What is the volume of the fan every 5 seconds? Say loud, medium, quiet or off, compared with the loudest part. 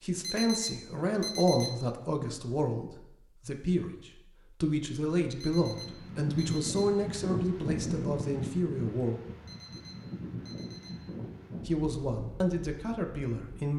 off, loud, medium.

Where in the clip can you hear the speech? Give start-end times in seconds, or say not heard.
0.0-9.2, 11.7-13.7.